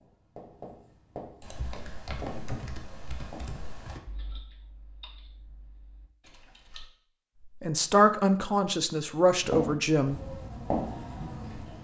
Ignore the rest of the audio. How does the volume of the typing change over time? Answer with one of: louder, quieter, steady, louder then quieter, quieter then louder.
quieter.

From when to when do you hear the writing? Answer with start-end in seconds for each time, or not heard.
0.0-3.6, 9.3-11.8.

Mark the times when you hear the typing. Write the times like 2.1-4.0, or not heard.
1.4-6.9.